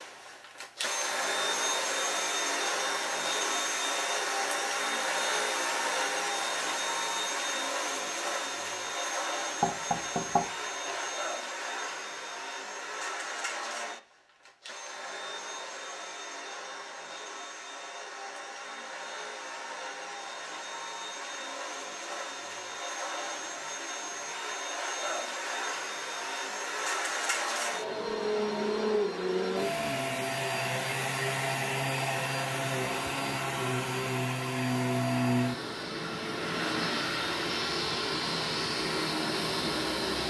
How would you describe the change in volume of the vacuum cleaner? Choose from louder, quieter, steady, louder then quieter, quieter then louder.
quieter then louder.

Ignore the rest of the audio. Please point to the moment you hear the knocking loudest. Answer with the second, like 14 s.
10 s.